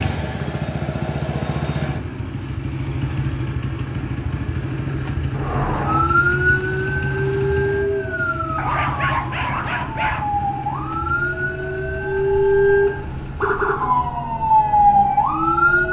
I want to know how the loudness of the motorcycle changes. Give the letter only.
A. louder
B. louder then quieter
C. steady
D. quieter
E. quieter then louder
D.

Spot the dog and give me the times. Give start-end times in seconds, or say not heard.
8.6-10.3.